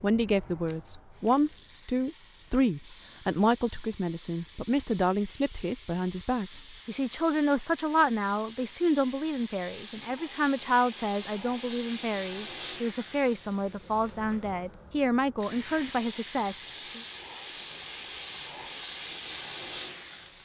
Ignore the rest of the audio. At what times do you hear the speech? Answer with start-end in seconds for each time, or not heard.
0.0-17.0.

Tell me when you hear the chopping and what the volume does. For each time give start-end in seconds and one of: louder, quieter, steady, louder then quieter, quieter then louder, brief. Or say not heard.
not heard.